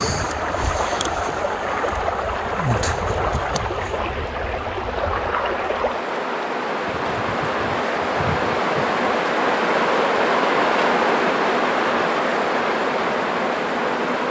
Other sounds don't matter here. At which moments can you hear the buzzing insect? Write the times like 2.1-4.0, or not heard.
0.0-14.2.